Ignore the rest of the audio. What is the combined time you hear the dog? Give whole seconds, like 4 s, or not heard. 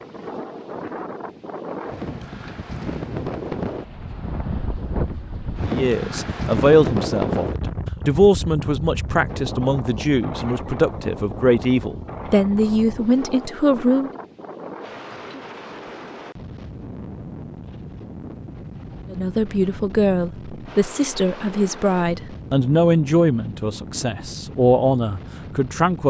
not heard.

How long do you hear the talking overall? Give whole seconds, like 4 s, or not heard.
15 s.